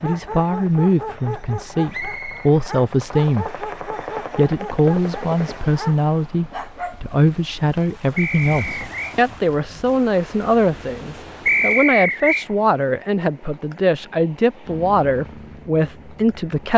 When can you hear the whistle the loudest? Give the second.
12 s.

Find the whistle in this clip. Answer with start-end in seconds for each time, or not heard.
1.9-2.5, 8.2-9.2, 11.4-12.4.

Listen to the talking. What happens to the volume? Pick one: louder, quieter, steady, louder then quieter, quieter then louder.
steady.